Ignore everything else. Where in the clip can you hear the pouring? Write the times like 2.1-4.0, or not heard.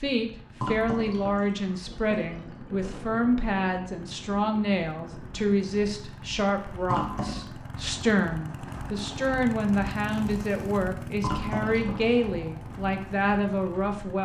0.6-2.5, 6.8-7.5, 11.2-12.2.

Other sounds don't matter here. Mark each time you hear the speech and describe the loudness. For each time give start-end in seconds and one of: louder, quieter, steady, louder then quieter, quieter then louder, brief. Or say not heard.
0.0-14.1 steady.